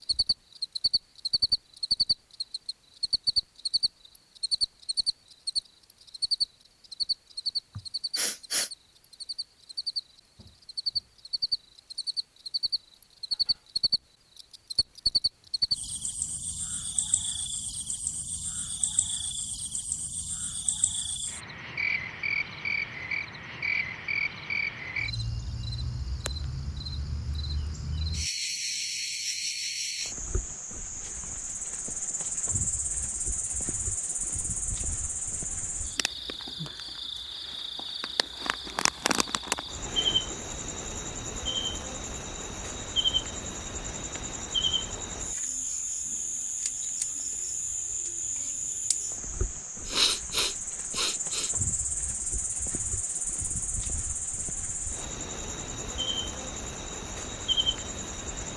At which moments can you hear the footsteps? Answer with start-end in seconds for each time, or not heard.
not heard.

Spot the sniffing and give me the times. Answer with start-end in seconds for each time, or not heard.
7.8-8.7, 49.9-51.5.